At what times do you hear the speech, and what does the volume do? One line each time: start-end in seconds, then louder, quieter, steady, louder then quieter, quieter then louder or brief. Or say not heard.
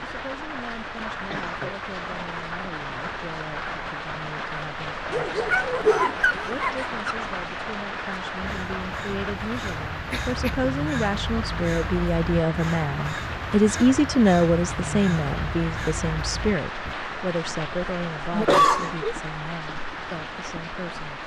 0.0-21.2 louder then quieter.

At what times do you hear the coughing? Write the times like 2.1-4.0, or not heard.
1.3-1.8, 10.1-10.7, 18.3-19.1.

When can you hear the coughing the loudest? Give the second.
19 s.